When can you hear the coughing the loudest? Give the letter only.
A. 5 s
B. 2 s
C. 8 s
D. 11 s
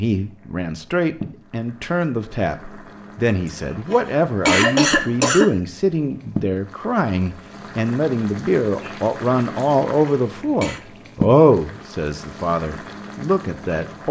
A.